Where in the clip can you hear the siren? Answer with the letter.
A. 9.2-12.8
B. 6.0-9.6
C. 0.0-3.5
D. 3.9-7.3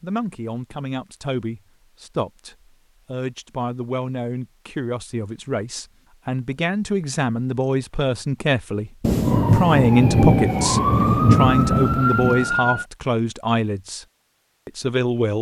A.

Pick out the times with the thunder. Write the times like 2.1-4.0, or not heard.
9.0-12.5.